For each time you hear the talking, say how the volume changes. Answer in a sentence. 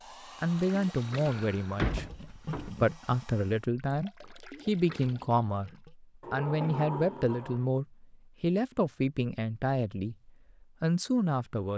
You can hear the talking from 0.4 to 11.7 s, at a steady volume.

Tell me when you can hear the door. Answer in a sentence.
You can hear the door from 1.2 to 2.7 s and from 6.2 to 7.7 s.